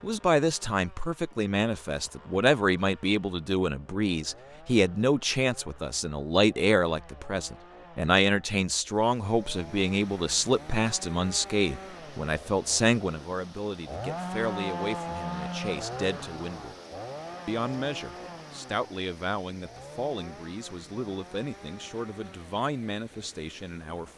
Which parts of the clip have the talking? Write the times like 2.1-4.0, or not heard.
0.0-16.8, 17.4-24.1.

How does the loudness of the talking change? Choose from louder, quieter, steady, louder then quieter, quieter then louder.
quieter.